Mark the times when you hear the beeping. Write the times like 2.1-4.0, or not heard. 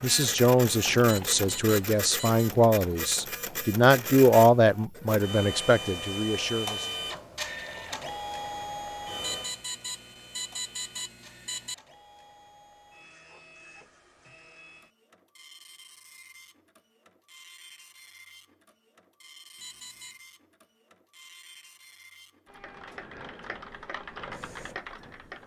1.1-2.5, 9.2-11.8, 19.6-20.1.